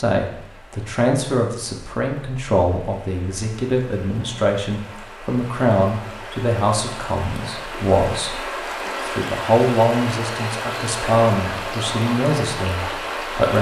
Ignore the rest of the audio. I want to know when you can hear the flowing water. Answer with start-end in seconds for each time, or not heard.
0.1-13.5.